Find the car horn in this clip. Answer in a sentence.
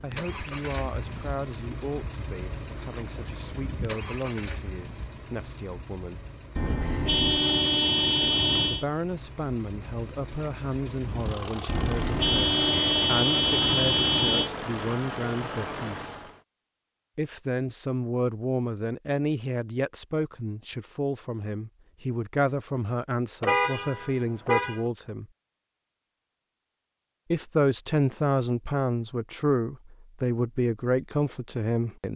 You can hear the car horn from 6.5 to 8.8 s, from 11.7 to 14.5 s and from 23.4 to 24.8 s.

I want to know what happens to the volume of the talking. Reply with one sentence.
The volume of the talking goes up.